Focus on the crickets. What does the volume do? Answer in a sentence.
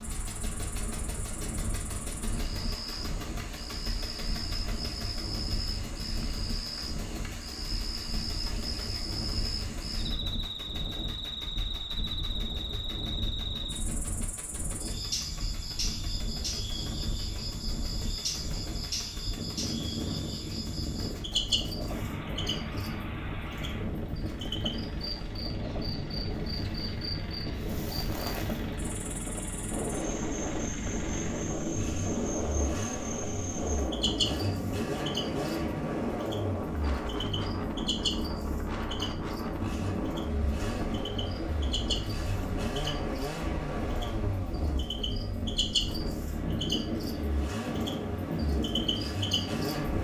The volume of the crickets stays about the same.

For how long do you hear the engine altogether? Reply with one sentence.
You can hear the engine for 50 seconds altogether.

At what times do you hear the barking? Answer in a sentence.
You can't hear the barking here.